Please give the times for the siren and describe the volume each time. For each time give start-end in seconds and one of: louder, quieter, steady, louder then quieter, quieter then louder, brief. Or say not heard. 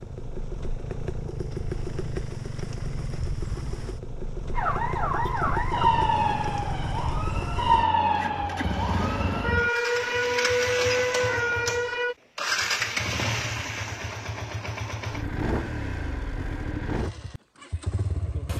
4.5-12.2 quieter then louder.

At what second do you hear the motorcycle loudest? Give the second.
13 s.